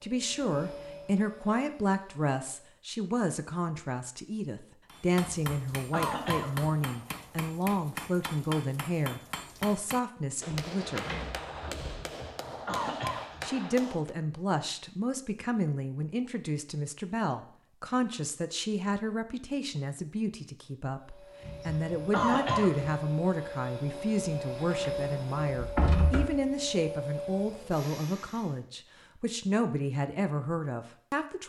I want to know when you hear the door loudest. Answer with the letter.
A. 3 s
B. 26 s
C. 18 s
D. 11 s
B.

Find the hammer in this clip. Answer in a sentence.
The hammer can be heard from 4.8 to 14.2 s.